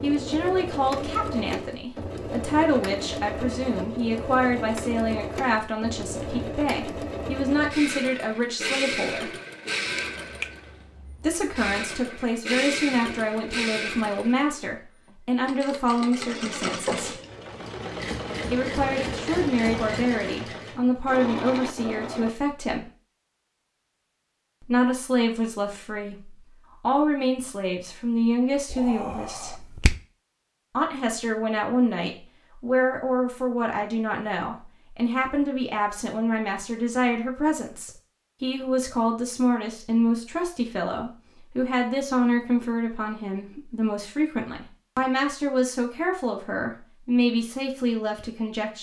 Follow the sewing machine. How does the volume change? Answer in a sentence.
The loudness of the sewing machine stays about the same.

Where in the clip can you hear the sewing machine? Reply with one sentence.
You can hear the sewing machine from 0.0 to 22.4 s.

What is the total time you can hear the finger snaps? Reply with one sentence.
The finger snaps can be heard for 3 seconds in total.